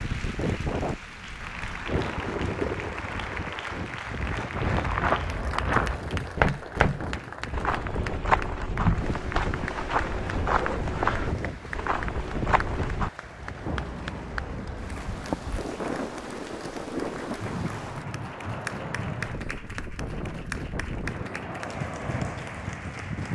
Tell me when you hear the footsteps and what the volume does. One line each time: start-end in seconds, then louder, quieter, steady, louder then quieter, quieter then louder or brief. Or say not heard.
4.5-13.1 quieter.